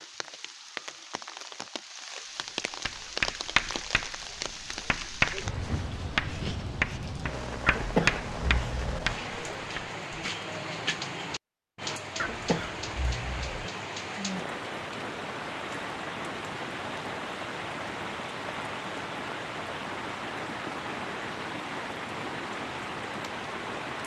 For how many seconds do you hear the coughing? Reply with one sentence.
The coughing can be heard for 3 seconds in total.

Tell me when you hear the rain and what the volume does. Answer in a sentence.
You can hear the rain from 0.0 to 24.0 s, at a steady volume.